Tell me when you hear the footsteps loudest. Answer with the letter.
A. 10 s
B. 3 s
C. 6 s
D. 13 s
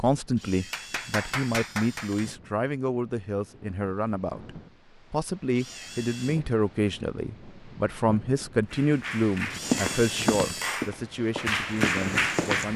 A.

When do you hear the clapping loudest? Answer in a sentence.
The volume of the clapping peaks at 12 seconds.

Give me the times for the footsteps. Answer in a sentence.
The footsteps can be heard from 9.6 to 12.7 s.